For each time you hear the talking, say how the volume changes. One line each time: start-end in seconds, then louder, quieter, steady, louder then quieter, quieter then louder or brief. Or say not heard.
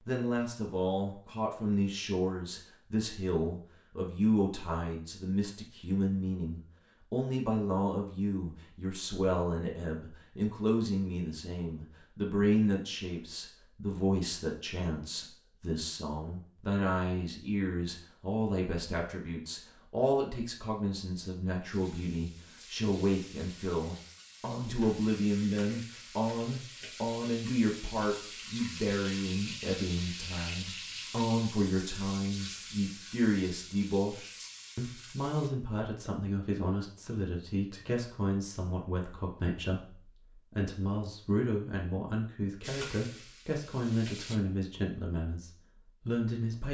0.1-46.7 steady.